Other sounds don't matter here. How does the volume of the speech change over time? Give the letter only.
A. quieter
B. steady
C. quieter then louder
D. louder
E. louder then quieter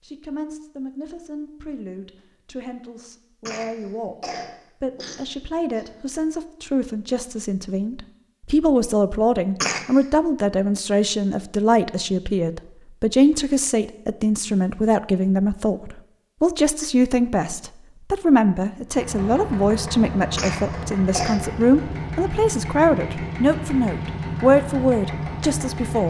D.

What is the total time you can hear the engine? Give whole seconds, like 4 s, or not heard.
7 s.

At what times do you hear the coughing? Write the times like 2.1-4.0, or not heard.
3.5-5.8, 9.6-10.1, 20.4-21.4.